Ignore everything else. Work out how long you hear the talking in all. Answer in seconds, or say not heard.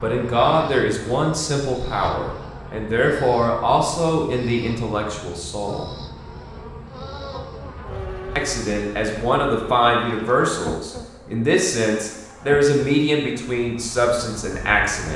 13 s.